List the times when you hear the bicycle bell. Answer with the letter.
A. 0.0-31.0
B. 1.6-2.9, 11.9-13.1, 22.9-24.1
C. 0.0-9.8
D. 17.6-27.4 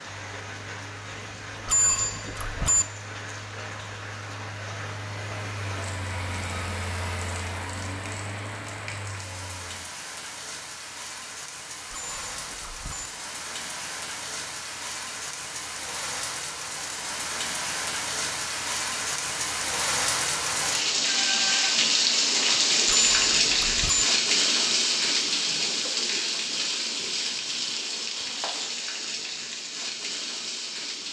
B.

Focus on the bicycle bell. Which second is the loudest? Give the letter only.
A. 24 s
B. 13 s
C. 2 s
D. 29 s
C.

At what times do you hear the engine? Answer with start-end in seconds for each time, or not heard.
0.0-9.8.